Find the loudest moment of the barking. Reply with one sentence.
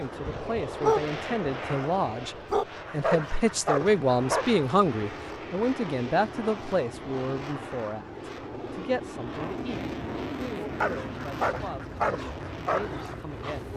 The loudest moment of the barking is at 1 second.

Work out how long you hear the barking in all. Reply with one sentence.
You can hear the barking for 8 seconds altogether.